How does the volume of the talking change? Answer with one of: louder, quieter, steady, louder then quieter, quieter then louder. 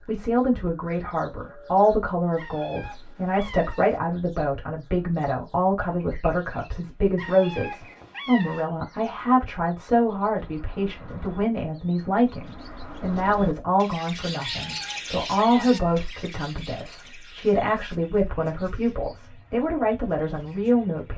steady.